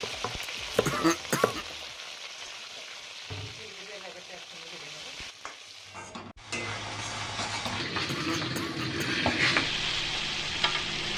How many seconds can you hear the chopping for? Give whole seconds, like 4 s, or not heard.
2 s.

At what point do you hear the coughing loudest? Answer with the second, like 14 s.
1 s.